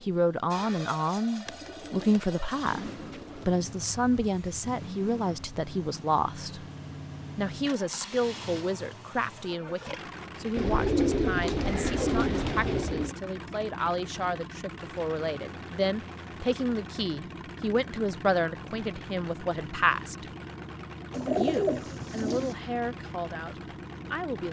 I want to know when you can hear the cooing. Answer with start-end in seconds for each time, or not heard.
1.4-3.5, 10.6-13.2, 21.1-22.6.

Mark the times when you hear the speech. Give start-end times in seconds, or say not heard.
0.0-6.7, 7.3-20.2, 21.4-24.4.